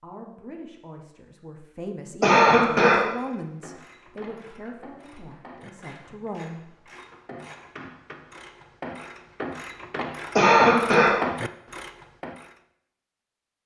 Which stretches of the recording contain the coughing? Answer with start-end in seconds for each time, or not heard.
2.2-3.0, 10.3-11.2.